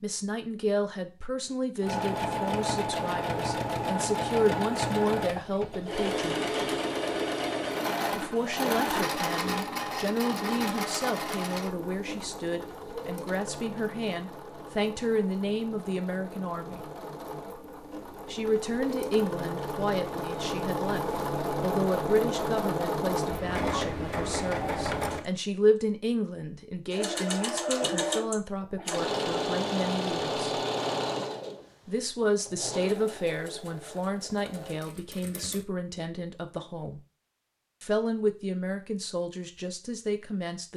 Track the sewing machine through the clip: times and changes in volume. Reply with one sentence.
The sewing machine can be heard from 1.8 to 25.2 s, getting quieter then louder; and from 26.9 to 35.6 s, getting quieter.